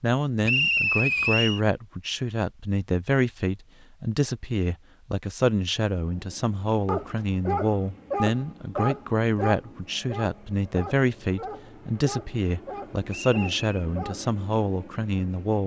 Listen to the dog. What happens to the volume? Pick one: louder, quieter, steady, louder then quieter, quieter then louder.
quieter.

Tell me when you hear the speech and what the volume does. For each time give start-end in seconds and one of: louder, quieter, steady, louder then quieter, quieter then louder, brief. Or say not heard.
0.0-15.6 steady.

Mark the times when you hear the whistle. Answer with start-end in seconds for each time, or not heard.
0.5-1.6, 13.1-13.6.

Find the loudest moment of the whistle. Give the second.
1 s.